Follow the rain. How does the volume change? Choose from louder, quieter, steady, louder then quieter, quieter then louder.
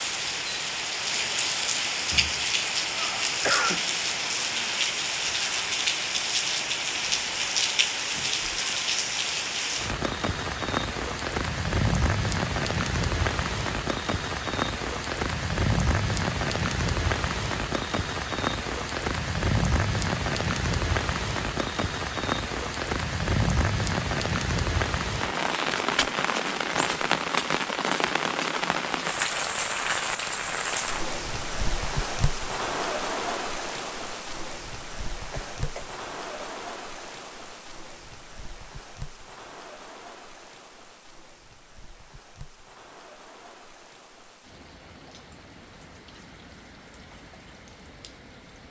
quieter.